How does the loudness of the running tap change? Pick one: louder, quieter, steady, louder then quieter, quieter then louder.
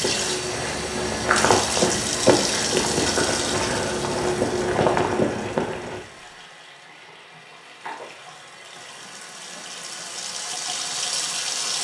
quieter then louder.